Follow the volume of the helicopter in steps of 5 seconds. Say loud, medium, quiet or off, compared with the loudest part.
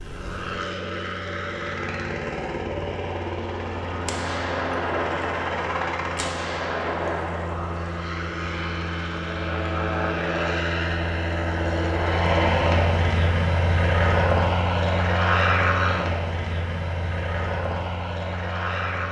medium, medium, loud, loud.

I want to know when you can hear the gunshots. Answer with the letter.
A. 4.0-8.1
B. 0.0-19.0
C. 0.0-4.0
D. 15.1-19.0
A.